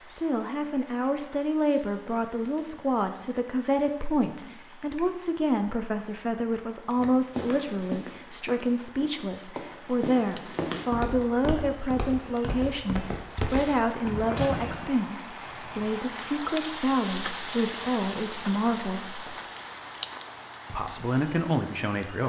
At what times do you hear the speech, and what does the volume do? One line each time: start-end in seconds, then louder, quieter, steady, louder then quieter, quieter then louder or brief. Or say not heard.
0.0-19.4 steady
20.7-22.2 brief.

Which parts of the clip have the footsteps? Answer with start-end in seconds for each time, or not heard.
7.0-14.8.